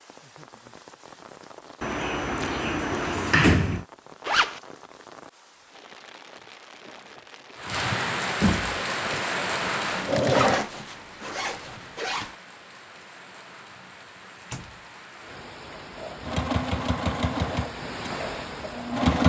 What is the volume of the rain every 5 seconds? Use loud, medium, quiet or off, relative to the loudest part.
quiet, loud, quiet, medium.